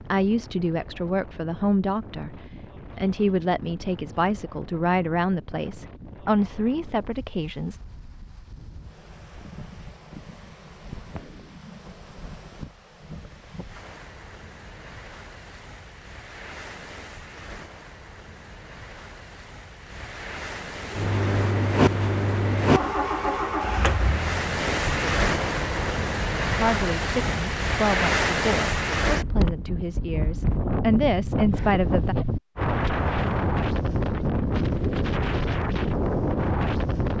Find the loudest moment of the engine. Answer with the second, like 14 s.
22 s.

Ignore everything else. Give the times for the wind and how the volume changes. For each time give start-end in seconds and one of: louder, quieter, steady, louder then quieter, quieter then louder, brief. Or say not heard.
0.0-37.1 louder.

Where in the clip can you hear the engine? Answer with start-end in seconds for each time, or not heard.
20.8-26.1.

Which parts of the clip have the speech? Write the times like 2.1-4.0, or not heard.
0.1-7.8, 26.5-32.1.